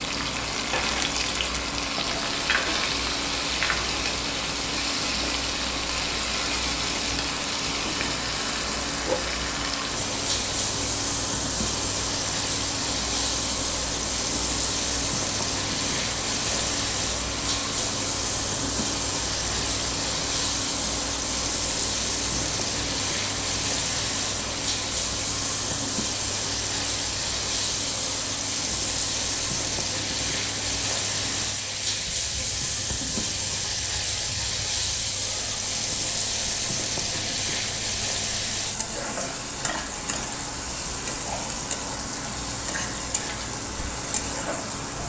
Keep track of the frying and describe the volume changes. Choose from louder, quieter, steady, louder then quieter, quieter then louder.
steady.